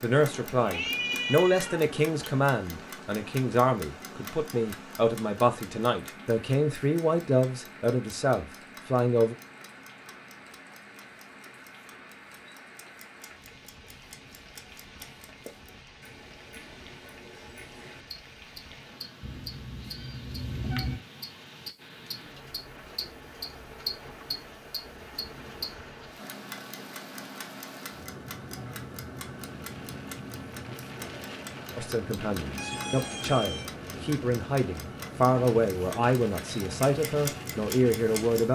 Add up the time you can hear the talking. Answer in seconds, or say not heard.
16 s.